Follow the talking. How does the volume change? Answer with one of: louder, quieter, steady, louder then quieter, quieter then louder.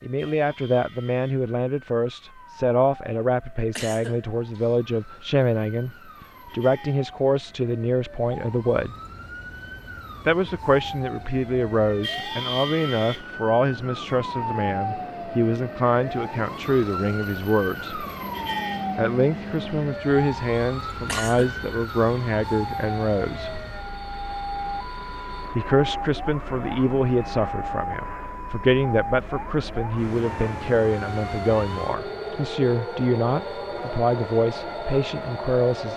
steady.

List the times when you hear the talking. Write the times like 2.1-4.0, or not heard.
0.0-8.9, 10.2-18.1, 18.9-23.6, 25.5-35.9.